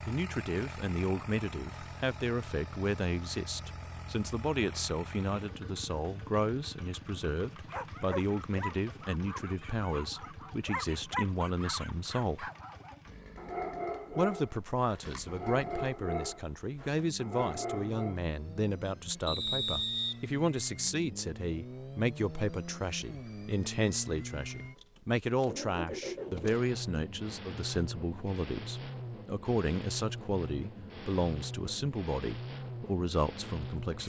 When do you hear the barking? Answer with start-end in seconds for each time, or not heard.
7.7-18.2.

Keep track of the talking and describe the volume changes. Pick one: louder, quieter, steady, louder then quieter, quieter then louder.
steady.